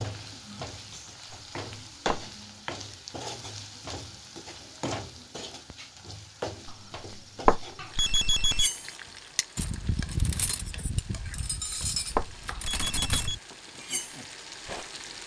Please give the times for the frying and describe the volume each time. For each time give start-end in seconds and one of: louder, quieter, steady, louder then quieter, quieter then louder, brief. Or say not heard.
0.0-15.2 quieter.